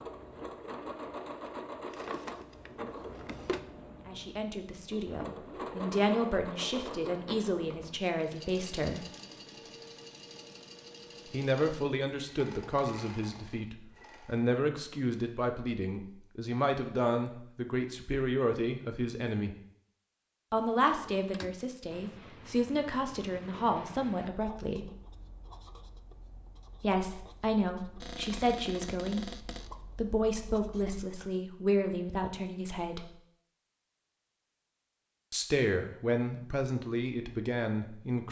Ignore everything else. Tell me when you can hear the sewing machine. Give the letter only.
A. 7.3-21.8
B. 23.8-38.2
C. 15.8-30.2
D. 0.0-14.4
D.